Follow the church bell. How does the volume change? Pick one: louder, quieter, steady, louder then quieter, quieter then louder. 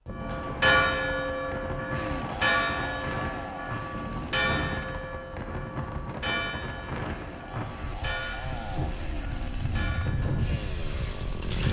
quieter.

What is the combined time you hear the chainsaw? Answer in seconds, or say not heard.
8 s.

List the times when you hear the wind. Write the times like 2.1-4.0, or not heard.
0.1-11.6.